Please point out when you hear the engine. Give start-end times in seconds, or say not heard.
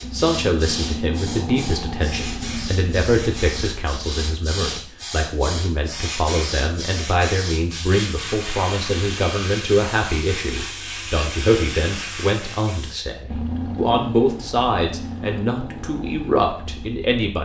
0.0-4.3, 13.2-17.1.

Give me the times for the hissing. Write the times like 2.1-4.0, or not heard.
0.0-12.9.